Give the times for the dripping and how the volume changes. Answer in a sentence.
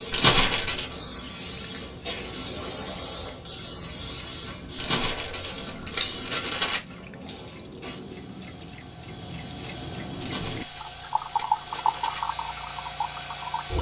You can hear the dripping from 0.0 to 13.7 s, getting louder.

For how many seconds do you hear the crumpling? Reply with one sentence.
You can hear the crumpling for 5 seconds altogether.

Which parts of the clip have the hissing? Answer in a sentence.
You can hear the hissing from 0.0 to 13.7 s.